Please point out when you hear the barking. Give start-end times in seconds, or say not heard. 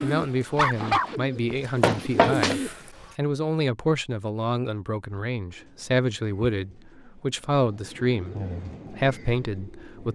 0.6-1.1.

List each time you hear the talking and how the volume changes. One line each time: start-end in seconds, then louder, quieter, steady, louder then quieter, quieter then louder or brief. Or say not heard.
0.0-10.1 steady.